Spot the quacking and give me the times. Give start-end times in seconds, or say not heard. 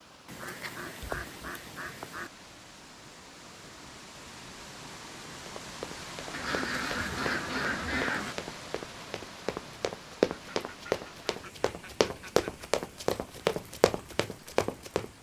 0.2-2.3, 6.3-8.3, 10.3-12.7.